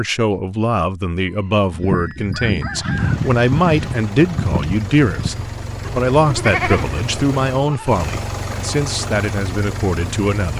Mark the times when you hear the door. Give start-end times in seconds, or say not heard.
not heard.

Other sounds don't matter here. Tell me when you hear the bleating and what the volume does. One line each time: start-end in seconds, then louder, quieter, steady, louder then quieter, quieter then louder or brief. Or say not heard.
1.7-7.9 quieter then louder.